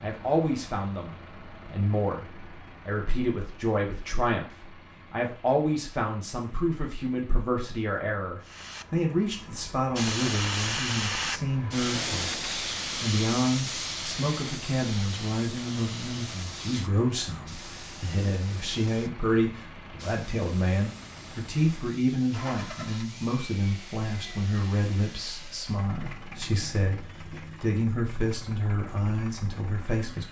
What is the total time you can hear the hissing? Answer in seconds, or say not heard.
17 s.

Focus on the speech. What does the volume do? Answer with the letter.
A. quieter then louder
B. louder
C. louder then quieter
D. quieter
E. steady
E.